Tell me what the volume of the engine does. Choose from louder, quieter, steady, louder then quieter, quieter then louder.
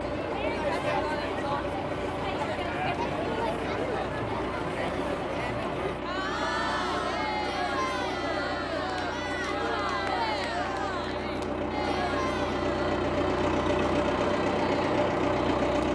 louder.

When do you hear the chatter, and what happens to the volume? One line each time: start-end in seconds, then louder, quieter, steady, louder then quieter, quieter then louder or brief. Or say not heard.
0.0-15.7 quieter.